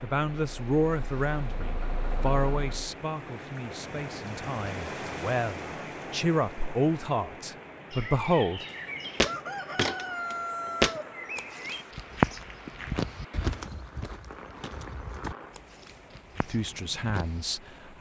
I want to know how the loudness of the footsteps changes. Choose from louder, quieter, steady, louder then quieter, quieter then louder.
quieter.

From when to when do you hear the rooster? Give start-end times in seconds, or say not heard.
7.9-11.8.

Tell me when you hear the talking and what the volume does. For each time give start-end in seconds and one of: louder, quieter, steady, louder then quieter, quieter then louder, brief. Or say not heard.
0.0-8.7 quieter then louder
16.4-17.9 brief.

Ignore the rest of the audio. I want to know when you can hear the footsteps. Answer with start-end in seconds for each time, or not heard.
9.2-17.4.